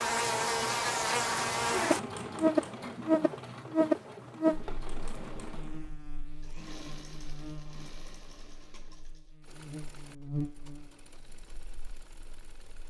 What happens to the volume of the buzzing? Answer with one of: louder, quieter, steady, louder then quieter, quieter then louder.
quieter then louder.